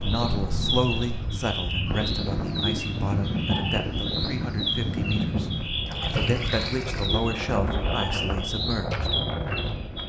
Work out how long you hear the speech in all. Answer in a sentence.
The speech can be heard for 9 seconds in total.